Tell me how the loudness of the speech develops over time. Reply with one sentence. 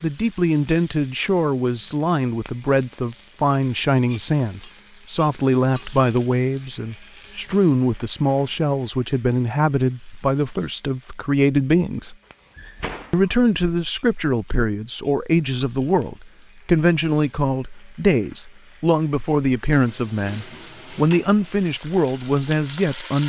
The loudness of the speech stays about the same.